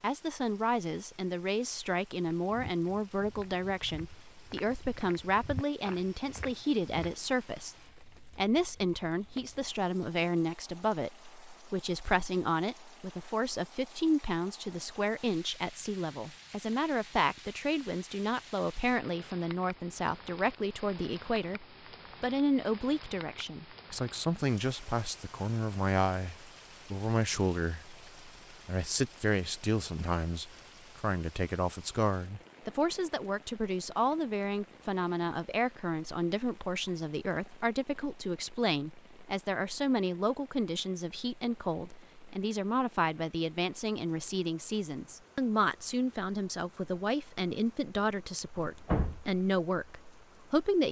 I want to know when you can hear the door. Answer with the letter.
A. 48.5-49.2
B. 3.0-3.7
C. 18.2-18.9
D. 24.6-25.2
A.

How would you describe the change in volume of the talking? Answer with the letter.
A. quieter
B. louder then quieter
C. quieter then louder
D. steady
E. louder
D.